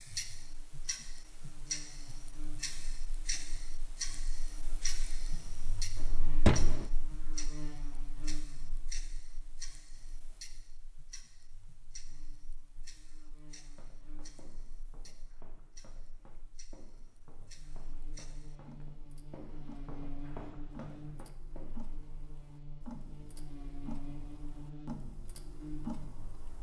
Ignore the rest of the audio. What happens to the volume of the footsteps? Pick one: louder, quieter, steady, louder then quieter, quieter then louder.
louder.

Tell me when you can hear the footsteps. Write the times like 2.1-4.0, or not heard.
13.5-21.9.